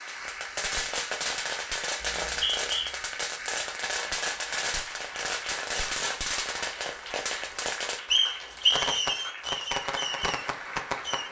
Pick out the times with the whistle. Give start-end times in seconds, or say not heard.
2.0-2.9, 8.1-8.8.